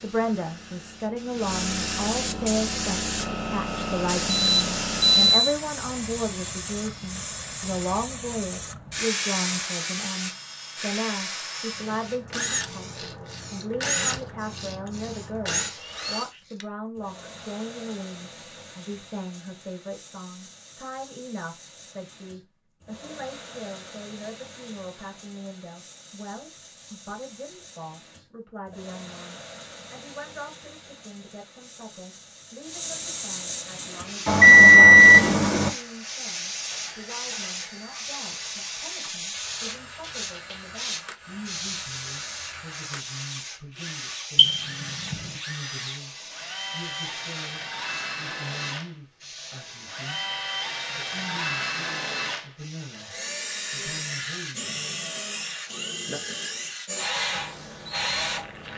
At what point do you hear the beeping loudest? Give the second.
35 s.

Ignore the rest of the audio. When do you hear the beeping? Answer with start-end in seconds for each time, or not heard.
4.3-5.5, 34.2-35.7, 44.4-45.1.